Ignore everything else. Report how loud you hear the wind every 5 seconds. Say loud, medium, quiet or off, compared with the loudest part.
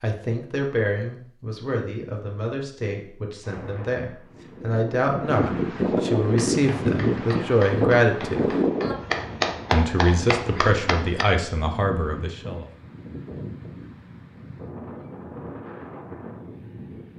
quiet, loud, quiet, quiet.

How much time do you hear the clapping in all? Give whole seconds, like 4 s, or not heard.
5 s.